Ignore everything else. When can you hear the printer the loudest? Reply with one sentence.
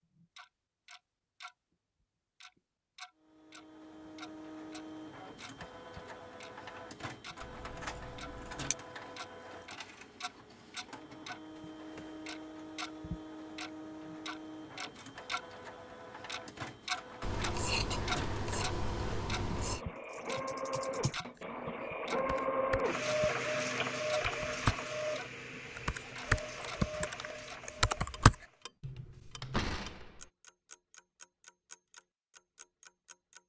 The volume of the printer peaks at 23 seconds.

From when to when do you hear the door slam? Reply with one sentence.
The door slam can be heard from 29.2 to 30.3 s.